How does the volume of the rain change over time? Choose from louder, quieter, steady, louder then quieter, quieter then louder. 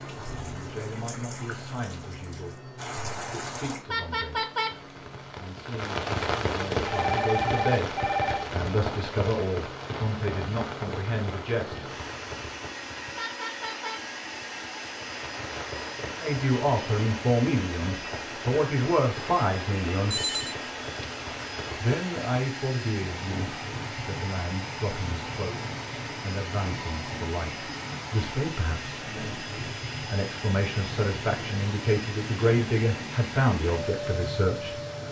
quieter.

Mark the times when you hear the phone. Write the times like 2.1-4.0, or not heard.
6.8-8.5, 20.1-21.4.